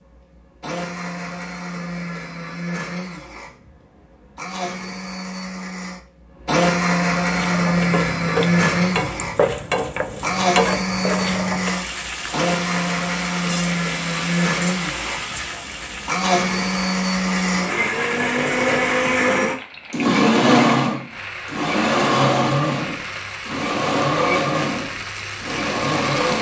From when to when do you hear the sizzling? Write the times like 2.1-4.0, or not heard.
7.3-26.3.